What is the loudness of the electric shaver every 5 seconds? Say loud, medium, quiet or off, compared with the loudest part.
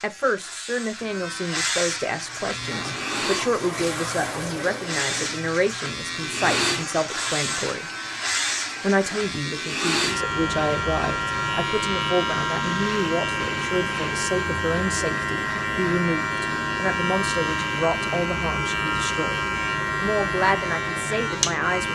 medium, loud, loud, loud, loud.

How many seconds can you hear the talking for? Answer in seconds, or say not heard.
21 s.